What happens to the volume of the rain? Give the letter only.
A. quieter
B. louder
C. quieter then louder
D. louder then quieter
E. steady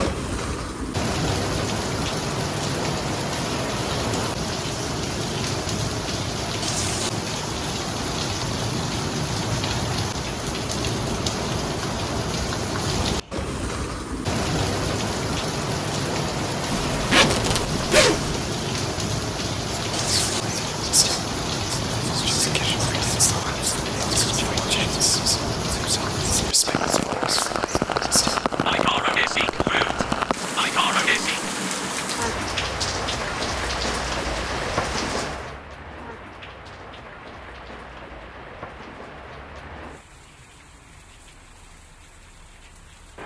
A.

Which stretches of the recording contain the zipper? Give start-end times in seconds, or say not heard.
16.7-18.4.